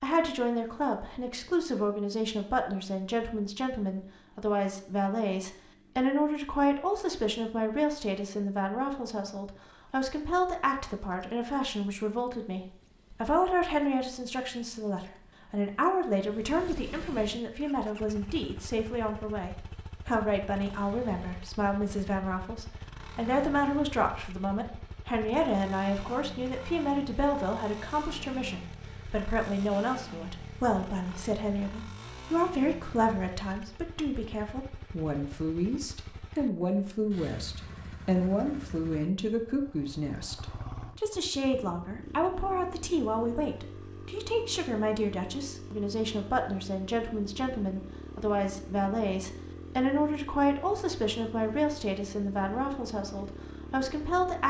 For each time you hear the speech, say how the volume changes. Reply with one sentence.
You can hear the speech from 0.0 to 54.4 s, at a steady volume.